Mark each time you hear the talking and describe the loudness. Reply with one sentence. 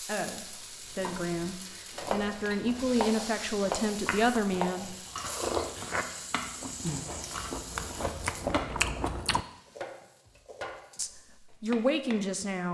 The talking can be heard from 0.0 to 5.0 s, getting louder; and briefly from 10.9 to 12.6 s.